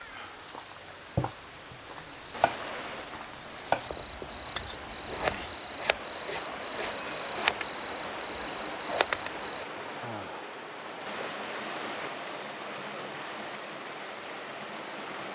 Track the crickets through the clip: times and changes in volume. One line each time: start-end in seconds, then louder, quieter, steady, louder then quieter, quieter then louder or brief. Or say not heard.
0.0-9.7 louder.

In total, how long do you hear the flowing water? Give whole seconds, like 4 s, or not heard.
15 s.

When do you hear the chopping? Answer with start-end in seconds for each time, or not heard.
1.1-2.6, 3.4-4.0.